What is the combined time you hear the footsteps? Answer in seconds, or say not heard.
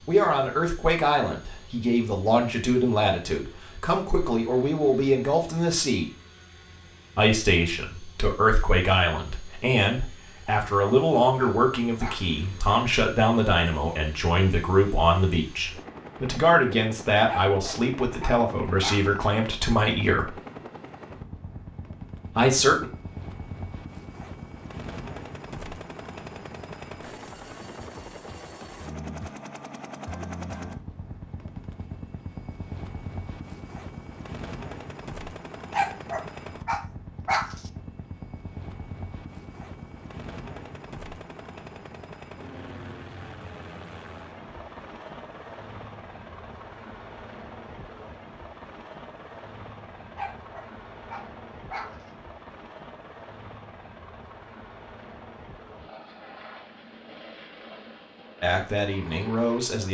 not heard.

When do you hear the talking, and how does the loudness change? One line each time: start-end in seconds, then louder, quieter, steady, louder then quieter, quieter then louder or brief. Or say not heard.
0.1-6.1 steady
7.2-20.4 steady
22.4-22.9 brief
58.4-59.8 brief.